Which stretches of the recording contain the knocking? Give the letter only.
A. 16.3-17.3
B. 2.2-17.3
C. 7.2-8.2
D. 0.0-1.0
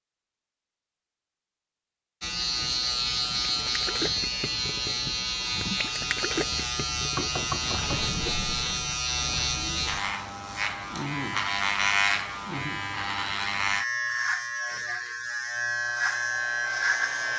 C.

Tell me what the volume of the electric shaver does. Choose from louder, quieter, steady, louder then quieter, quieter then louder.
steady.